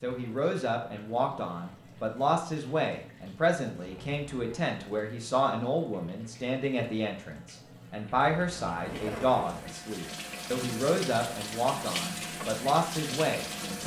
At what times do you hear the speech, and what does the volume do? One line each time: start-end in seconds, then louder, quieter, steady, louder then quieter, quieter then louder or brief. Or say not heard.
0.0-13.8 steady.